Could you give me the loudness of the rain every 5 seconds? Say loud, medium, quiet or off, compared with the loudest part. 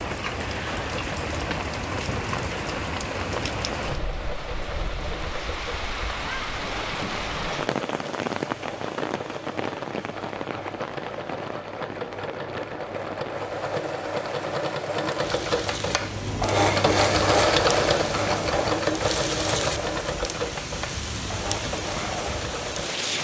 loud, loud, medium, loud, loud.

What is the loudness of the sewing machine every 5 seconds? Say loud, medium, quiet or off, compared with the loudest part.
quiet, quiet, medium, loud, medium.